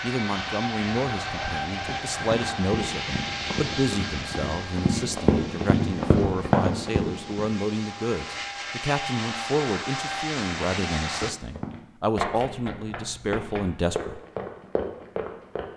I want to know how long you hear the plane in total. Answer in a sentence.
You can hear the plane for 11 seconds altogether.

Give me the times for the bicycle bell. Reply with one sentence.
You can't hear the bicycle bell here.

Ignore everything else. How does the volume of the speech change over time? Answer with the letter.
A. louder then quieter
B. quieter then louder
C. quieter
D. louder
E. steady
E.